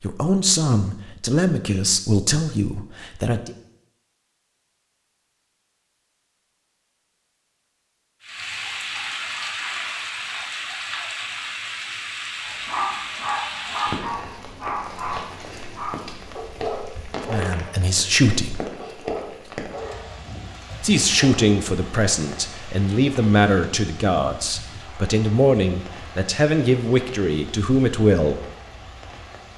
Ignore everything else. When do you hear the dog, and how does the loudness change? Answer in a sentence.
You can hear the dog from 12.4 to 21.4 s, getting quieter.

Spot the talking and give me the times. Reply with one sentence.
The talking can be heard from 0.0 to 3.5 s, from 17.2 to 18.6 s and from 20.8 to 28.4 s.